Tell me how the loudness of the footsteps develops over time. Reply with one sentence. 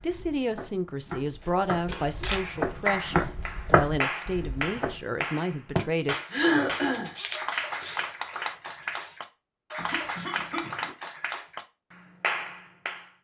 The volume of the footsteps goes up.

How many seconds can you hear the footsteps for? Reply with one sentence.
You can hear the footsteps for 5 seconds altogether.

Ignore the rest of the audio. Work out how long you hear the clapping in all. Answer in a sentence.
You can hear the clapping for 11 seconds altogether.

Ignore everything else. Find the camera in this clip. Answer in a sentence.
You can hear the camera from 1.4 to 3.1 s and from 6.9 to 9.2 s.